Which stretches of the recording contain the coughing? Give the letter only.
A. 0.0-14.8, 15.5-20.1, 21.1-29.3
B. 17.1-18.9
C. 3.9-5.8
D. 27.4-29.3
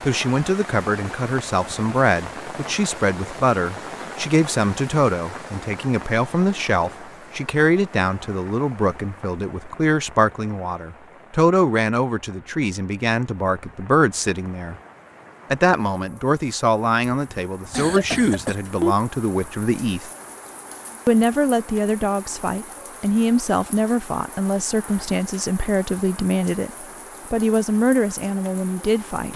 B.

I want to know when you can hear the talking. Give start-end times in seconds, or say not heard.
0.0-14.8, 15.5-20.1, 21.1-29.3.